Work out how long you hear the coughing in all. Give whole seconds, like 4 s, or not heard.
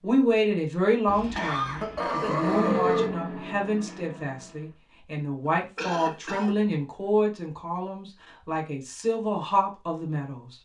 3 s.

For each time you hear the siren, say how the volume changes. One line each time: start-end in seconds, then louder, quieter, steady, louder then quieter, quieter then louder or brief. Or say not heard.
not heard.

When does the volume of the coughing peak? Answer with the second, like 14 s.
3 s.